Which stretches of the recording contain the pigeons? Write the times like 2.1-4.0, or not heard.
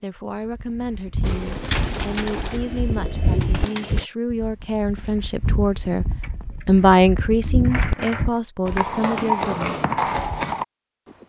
1.2-4.0, 6.2-8.4.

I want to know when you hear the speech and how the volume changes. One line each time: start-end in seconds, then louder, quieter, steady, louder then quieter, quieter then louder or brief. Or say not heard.
0.0-9.9 louder then quieter.